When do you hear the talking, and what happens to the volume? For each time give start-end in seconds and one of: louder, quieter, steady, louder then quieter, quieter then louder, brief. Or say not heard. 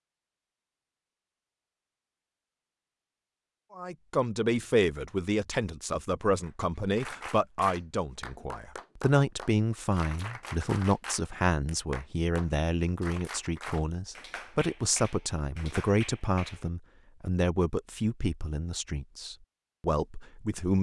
3.8-20.7 steady.